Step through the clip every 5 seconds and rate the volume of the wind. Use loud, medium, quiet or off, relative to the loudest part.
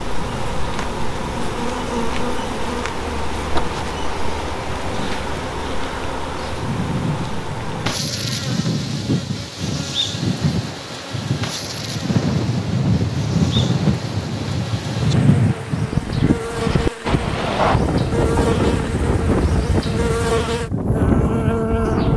quiet, medium, loud, loud, loud.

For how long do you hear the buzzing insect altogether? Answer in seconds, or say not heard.
22 s.